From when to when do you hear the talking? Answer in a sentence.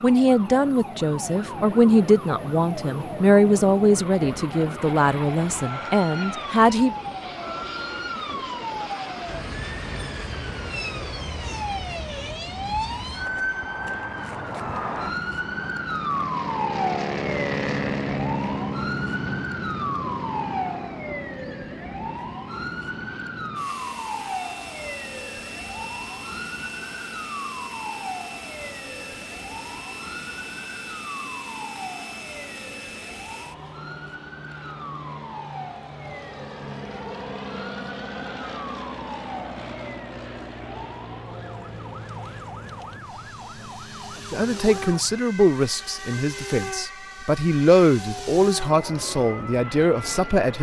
You can hear the talking from 0.0 to 7.0 s and from 44.3 to 50.5 s.